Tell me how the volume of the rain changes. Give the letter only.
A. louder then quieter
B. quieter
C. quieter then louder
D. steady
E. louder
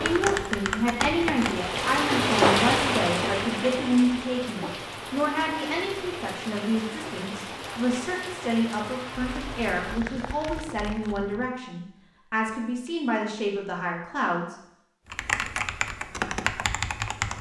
B.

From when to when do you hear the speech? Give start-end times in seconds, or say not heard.
0.0-14.6.